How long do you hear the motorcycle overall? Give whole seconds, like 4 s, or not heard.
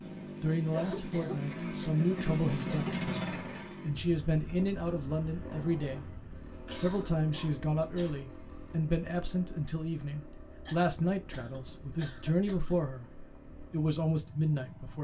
15 s.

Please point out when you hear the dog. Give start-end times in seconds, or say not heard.
not heard.